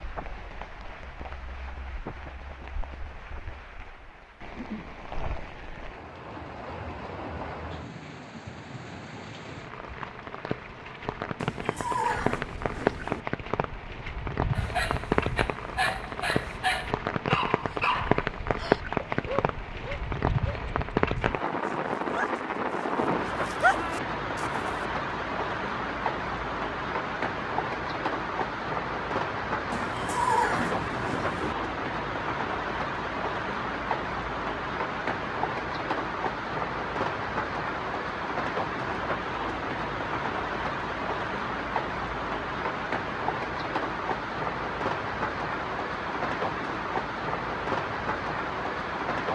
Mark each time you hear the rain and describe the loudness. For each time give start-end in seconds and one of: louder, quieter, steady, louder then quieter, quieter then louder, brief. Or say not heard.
0.0-49.2 louder.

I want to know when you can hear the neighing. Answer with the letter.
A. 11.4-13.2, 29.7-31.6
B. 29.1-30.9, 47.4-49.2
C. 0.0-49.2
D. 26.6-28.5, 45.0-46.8
A.